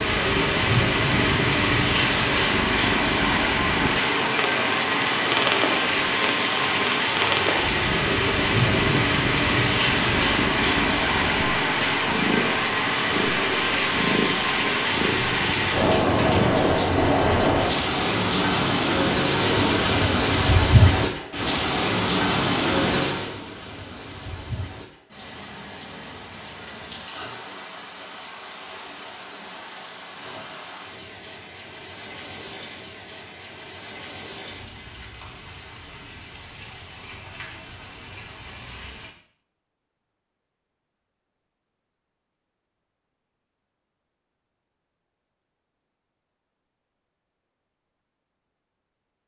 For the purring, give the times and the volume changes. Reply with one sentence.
The purring can be heard from 0.0 to 16.6 s, at a steady volume.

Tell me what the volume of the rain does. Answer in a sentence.
The volume of the rain goes down.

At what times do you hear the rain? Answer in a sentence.
The rain can be heard from 0.0 to 39.1 s.